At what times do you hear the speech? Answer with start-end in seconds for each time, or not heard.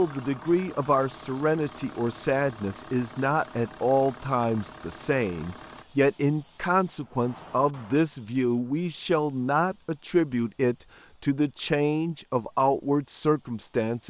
0.0-14.0.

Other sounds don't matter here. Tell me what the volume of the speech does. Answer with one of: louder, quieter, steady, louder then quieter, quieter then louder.
steady.